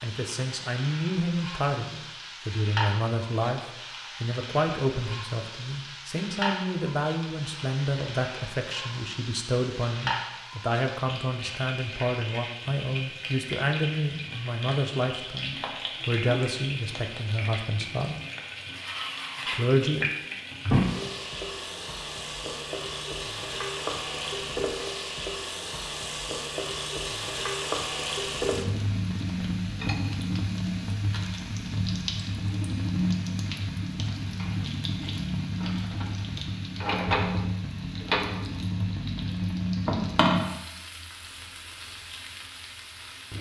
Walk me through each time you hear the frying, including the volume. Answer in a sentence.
The frying can be heard from 0.0 to 43.3 s, getting louder.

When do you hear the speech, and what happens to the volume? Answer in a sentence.
The speech can be heard from 0.0 to 18.2 s, at a steady volume; and briefly from 19.5 to 20.1 s.